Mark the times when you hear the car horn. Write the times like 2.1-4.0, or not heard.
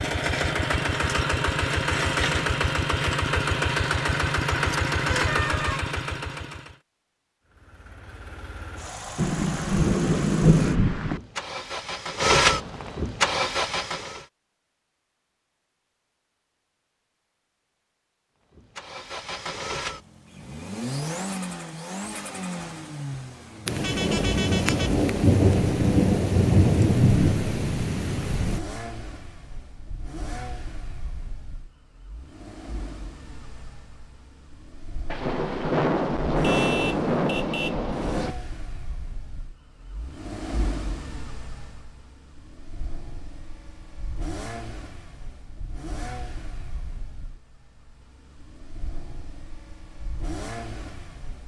5.1-5.8, 23.8-25.0, 36.4-37.8.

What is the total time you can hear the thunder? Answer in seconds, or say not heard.
10 s.